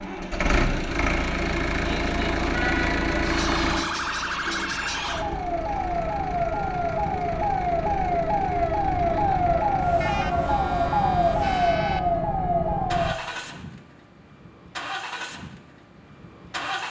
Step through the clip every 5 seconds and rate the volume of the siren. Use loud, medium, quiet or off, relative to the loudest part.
medium, loud, loud, off.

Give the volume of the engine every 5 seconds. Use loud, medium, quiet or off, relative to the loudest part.
loud, quiet, medium, medium.